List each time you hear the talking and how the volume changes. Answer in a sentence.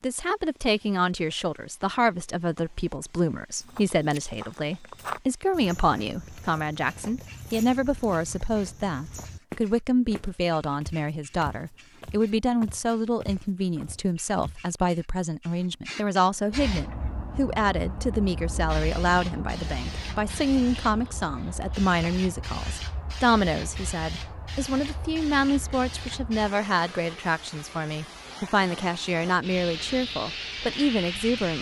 You can hear the talking from 0.0 to 31.5 s, at a steady volume.